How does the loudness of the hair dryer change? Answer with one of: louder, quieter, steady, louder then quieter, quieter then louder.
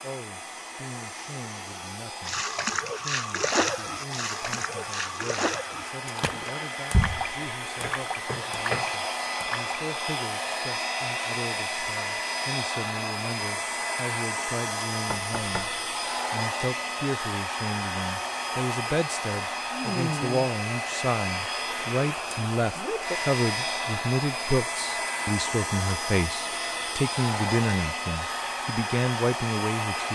louder.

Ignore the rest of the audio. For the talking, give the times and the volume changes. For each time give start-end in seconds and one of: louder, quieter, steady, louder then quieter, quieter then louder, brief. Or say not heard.
0.0-30.0 louder.